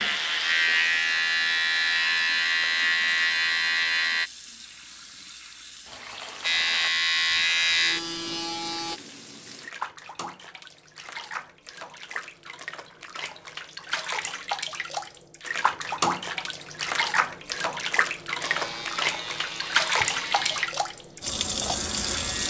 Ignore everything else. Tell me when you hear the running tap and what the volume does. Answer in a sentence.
The running tap can be heard from 0.0 to 22.4 s, getting louder.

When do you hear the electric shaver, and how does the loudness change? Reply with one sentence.
The electric shaver can be heard from 0.0 to 4.3 s, at a steady volume; briefly from 6.4 to 9.0 s; and from 18.4 to 22.4 s, getting quieter then louder.